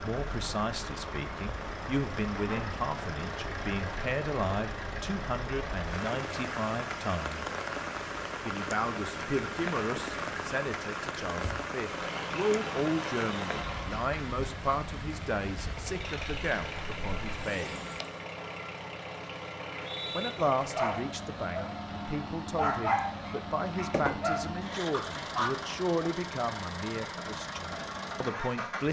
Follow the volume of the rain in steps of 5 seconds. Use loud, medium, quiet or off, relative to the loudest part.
loud, loud, loud, medium, off, off.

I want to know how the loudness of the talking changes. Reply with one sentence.
The volume of the talking stays about the same.